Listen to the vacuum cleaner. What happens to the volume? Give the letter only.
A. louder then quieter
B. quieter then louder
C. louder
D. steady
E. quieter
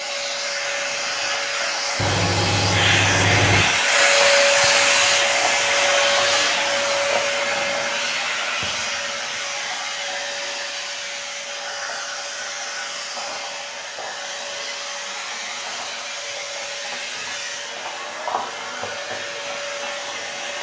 E.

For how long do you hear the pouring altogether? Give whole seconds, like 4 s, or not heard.
2 s.